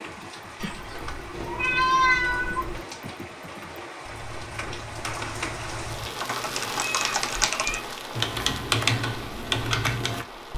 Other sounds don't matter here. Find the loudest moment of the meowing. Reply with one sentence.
The volume of the meowing peaks at 2 seconds.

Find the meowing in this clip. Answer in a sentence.
You can hear the meowing from 0.6 to 2.8 s and from 6.8 to 7.8 s.